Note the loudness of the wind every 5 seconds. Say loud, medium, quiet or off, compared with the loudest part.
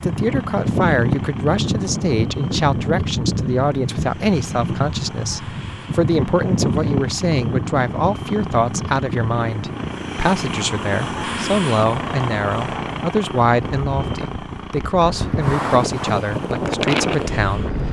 loud, loud, medium, loud.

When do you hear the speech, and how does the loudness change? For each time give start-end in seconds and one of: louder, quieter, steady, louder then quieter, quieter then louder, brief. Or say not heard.
0.0-17.8 steady.